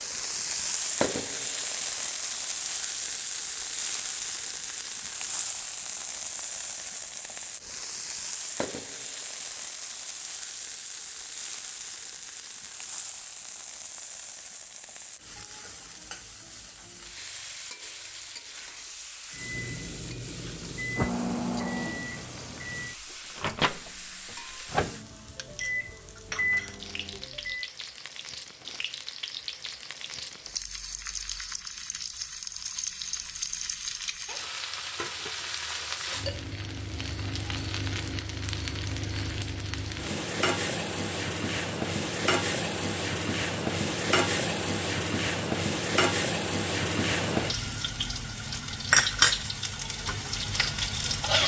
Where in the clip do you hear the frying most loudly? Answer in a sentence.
The loudest moment of the frying is at 49 seconds.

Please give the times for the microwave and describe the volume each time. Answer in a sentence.
The microwave can be heard from 19.3 to 27.7 s, at a steady volume.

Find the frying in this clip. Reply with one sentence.
You can hear the frying from 0.0 to 51.4 s.